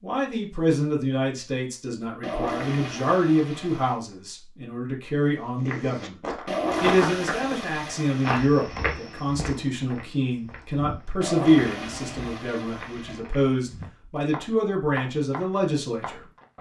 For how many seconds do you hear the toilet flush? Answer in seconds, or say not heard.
6 s.